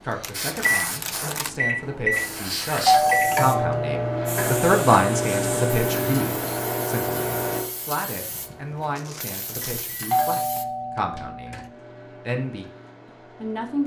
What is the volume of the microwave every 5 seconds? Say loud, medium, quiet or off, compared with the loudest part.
loud, loud, quiet.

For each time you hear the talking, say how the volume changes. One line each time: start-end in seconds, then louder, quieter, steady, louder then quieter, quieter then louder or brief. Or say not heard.
0.0-13.8 louder then quieter.